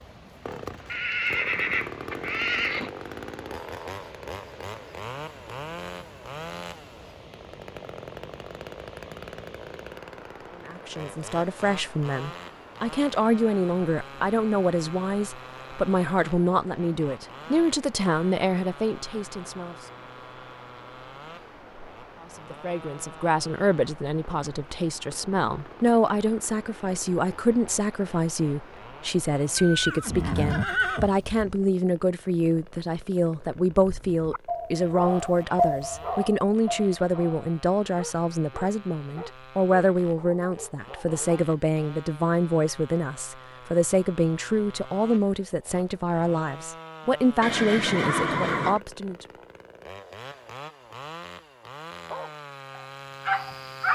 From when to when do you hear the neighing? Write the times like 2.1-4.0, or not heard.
0.8-2.9, 29.6-31.4, 47.4-48.8.